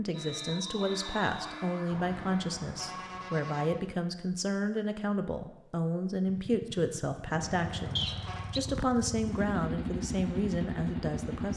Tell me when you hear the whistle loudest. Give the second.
8 s.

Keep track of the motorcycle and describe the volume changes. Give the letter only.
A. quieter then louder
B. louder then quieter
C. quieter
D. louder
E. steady
D.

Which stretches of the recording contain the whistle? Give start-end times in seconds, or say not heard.
0.1-1.6, 8.0-8.6.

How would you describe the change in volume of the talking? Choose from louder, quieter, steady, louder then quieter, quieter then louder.
steady.